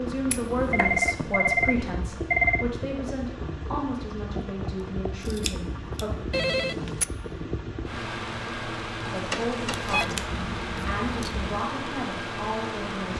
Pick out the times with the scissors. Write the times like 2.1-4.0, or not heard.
0.3-1.2, 5.2-6.0, 9.7-11.5.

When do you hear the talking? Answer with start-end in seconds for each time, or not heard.
0.0-6.2, 9.1-13.1.